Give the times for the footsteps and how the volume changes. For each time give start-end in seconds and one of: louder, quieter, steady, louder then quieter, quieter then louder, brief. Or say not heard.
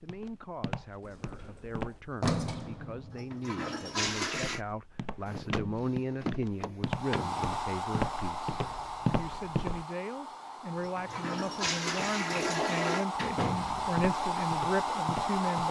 0.0-2.0 brief
4.3-9.8 louder
13.8-15.6 brief.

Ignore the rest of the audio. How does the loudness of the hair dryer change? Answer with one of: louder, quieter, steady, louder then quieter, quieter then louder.
quieter then louder.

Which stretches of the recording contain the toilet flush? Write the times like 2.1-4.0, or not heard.
3.1-4.6, 10.8-13.1.